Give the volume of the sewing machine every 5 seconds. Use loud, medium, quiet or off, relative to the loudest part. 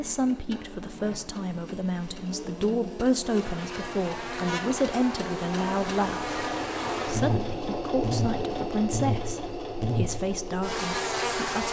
medium, loud, loud.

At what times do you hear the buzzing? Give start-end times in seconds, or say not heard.
0.0-11.6.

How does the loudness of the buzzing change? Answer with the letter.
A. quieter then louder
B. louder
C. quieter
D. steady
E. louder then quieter
B.